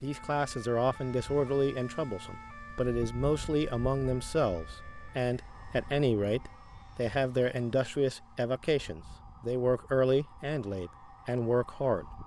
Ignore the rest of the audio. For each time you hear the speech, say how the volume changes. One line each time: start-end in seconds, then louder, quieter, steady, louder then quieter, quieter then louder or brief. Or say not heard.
0.0-12.1 steady.